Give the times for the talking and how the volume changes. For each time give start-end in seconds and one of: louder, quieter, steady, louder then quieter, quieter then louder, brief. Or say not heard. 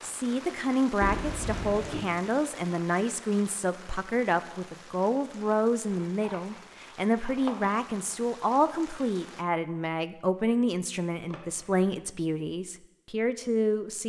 0.0-14.0 steady.